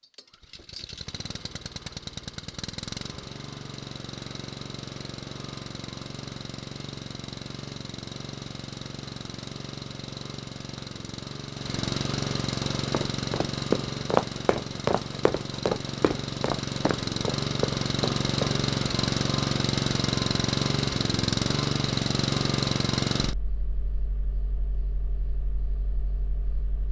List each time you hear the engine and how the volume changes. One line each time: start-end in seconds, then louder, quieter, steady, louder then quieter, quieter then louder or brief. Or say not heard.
0.0-26.8 louder.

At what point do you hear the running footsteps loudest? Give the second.
14 s.